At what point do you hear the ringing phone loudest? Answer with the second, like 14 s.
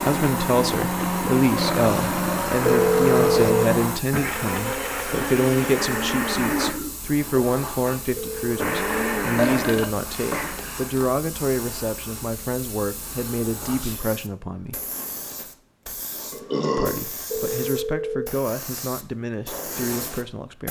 3 s.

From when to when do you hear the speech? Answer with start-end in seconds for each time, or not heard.
0.0-14.8, 16.8-20.6.